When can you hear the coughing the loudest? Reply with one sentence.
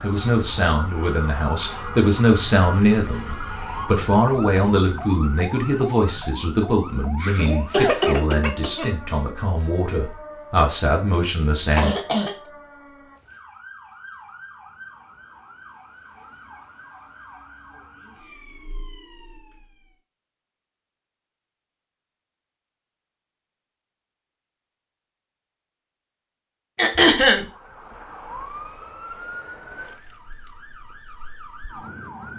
The volume of the coughing peaks at 27 seconds.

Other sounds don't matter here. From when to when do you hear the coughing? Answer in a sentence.
You can hear the coughing from 7.2 to 8.9 s, from 11.8 to 12.3 s and from 26.8 to 27.4 s.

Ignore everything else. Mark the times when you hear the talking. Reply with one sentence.
You can hear the talking from 0.0 to 11.9 s.